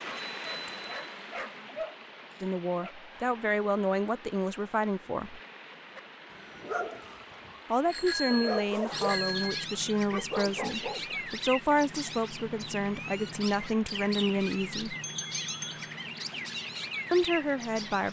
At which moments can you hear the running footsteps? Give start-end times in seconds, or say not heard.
not heard.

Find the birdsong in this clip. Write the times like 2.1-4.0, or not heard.
8.9-18.0.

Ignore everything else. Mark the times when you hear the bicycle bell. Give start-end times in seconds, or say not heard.
0.1-0.9, 7.8-9.7, 15.0-15.9.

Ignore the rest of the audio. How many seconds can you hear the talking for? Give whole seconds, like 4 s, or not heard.
11 s.